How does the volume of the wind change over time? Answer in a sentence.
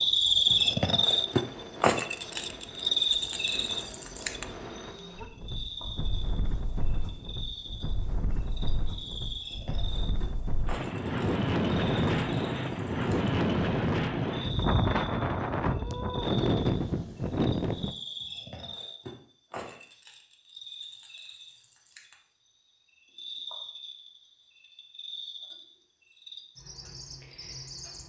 The loudness of the wind goes up.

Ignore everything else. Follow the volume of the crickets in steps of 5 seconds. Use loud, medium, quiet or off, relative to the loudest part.
loud, quiet, quiet, quiet, quiet, quiet.